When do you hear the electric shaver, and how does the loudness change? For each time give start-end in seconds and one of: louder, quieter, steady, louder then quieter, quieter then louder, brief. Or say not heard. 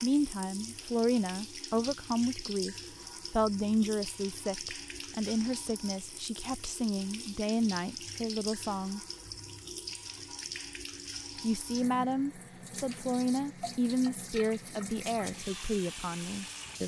not heard.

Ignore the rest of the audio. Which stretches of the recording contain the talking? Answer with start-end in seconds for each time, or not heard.
0.0-9.0, 11.4-16.8.